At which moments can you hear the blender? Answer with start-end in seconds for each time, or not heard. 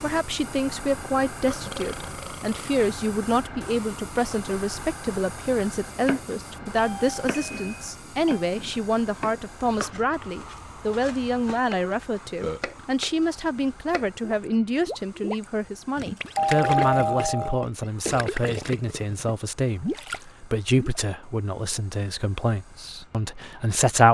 not heard.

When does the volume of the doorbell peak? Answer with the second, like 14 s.
17 s.